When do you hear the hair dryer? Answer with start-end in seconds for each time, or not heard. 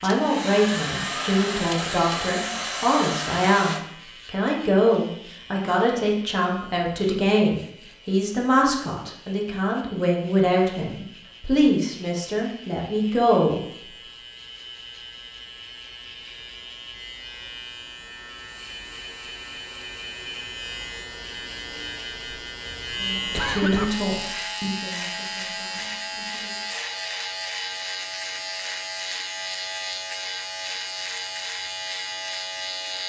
0.0-3.8.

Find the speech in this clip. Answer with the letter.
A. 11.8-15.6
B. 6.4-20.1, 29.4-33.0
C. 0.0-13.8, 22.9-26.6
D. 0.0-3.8
C.